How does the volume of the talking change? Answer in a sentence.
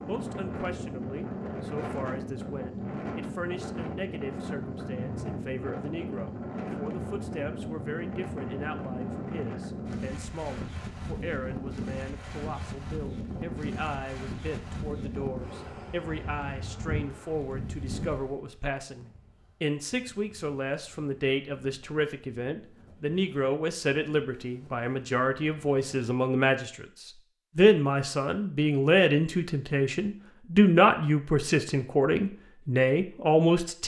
The loudness of the talking goes up.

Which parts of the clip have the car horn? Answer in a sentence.
You can't hear the car horn here.